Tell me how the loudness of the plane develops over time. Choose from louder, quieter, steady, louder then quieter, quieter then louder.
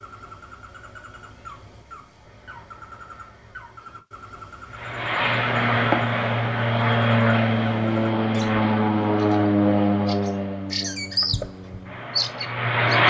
quieter.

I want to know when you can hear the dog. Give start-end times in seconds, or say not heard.
not heard.